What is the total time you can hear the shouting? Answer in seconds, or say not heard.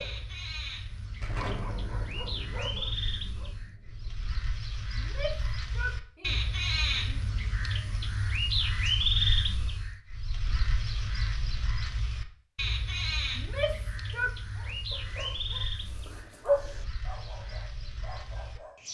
3 s.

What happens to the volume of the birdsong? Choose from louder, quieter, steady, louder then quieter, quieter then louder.
louder then quieter.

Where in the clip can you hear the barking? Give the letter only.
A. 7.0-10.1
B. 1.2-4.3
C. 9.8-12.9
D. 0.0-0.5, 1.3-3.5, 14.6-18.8
D.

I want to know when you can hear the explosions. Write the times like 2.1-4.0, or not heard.
1.2-4.3.